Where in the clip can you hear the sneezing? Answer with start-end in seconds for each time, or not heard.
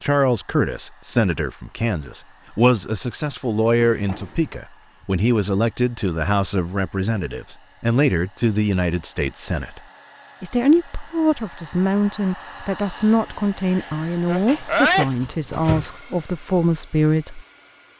13.8-15.1.